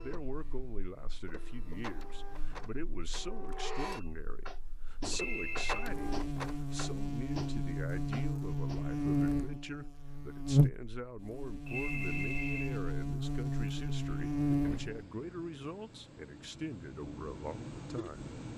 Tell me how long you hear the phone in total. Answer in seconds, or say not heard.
2 s.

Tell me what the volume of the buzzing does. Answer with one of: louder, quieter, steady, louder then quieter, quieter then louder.
louder.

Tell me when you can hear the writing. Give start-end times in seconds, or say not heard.
not heard.